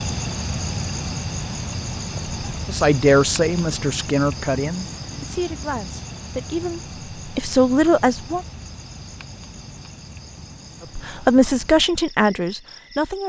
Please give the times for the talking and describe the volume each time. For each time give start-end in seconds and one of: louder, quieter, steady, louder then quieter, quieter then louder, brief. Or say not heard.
2.6-8.4 quieter then louder
10.9-13.2 brief.